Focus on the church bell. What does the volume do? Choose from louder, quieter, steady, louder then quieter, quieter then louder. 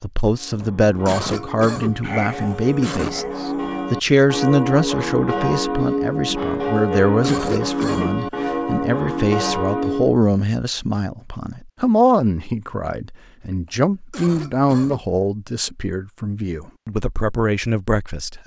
louder.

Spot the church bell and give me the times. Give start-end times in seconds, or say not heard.
0.2-10.2.